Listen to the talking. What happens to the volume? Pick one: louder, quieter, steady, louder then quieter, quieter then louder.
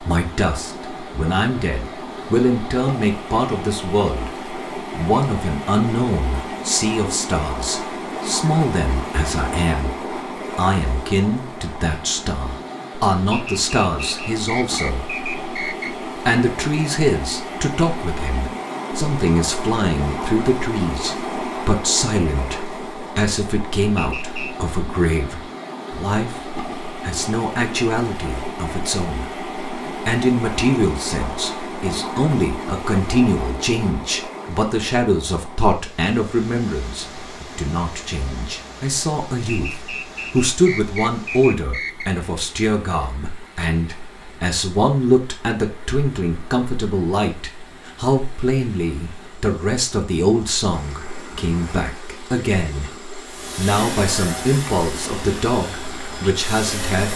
steady.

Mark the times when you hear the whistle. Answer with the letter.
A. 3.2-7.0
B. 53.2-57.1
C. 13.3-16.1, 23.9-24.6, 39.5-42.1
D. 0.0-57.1
C.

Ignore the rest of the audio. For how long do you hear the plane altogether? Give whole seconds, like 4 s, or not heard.
4 s.